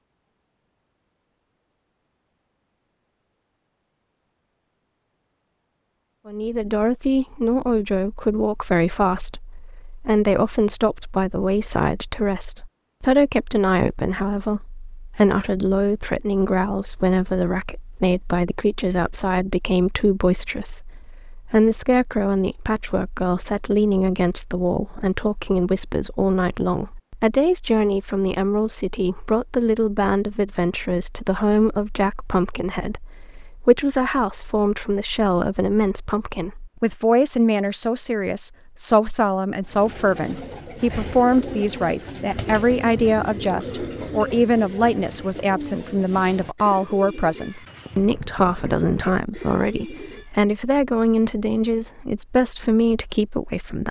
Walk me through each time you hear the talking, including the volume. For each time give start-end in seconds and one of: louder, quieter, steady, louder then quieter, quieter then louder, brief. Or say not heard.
6.2-53.8 steady.